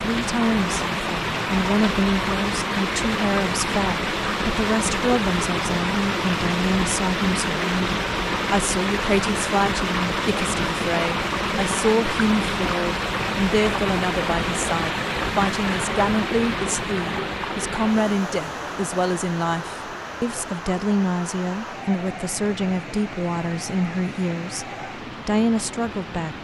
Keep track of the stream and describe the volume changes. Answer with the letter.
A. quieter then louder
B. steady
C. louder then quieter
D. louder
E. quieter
E.